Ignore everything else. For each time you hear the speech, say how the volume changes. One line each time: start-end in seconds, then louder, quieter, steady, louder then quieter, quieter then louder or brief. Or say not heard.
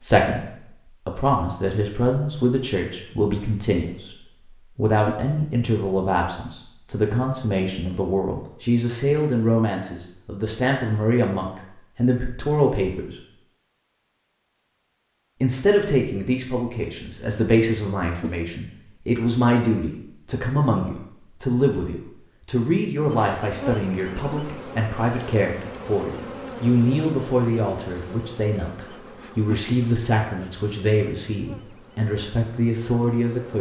0.0-13.2 steady
15.4-33.5 steady.